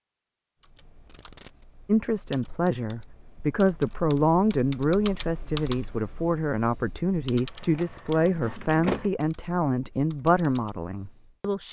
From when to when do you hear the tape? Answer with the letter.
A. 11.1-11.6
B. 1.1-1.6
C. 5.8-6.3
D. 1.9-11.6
B.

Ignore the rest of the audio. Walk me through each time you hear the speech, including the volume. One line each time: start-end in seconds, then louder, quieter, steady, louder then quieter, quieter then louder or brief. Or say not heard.
1.9-11.6 steady.